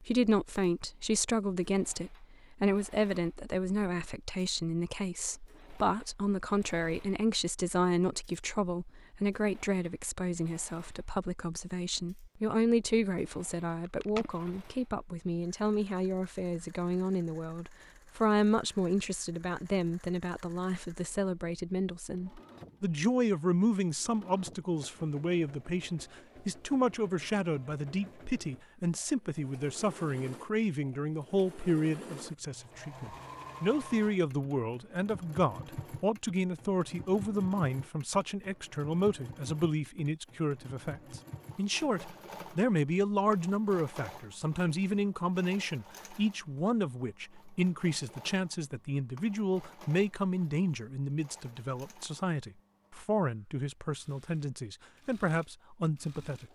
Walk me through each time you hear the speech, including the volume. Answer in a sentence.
You can hear the speech from 0.0 to 56.5 s, at a steady volume.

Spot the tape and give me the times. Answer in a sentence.
The tape can be heard from 13.8 to 14.5 s.